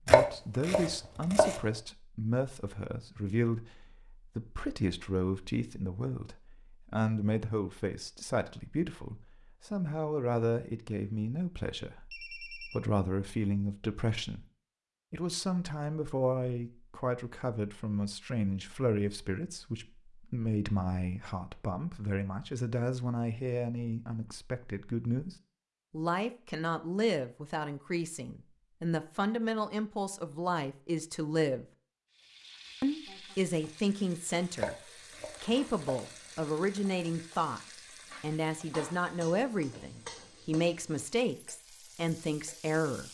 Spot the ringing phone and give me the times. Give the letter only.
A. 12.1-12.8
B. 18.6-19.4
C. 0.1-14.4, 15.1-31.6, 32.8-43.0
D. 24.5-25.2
A.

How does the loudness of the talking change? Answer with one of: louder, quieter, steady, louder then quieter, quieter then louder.
steady.